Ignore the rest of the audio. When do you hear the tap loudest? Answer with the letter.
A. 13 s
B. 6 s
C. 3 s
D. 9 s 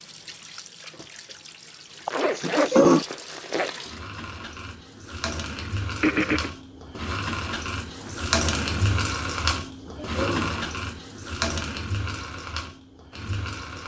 D.